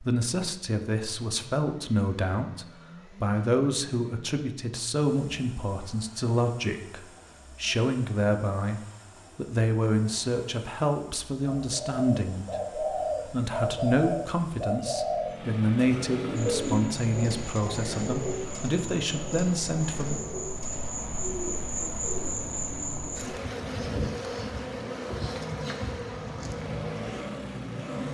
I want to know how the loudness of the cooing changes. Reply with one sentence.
The volume of the cooing goes down.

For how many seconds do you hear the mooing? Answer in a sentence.
The mooing can't be heard in this clip.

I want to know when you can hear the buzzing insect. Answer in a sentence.
The buzzing insect can be heard from 16.6 to 28.0 s.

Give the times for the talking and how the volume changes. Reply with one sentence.
The talking can be heard from 0.0 to 20.2 s, at a steady volume.